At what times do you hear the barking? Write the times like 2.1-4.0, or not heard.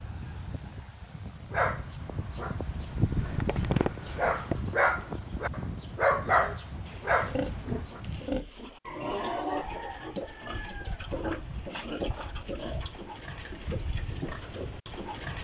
1.5-8.0.